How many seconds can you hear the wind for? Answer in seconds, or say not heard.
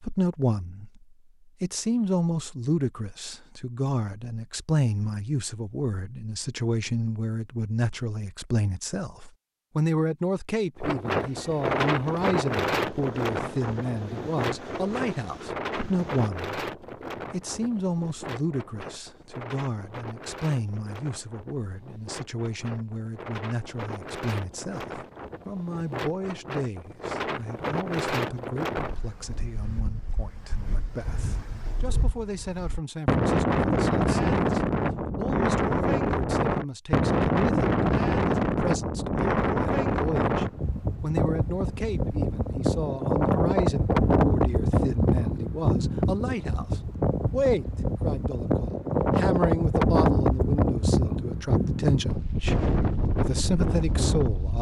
44 s.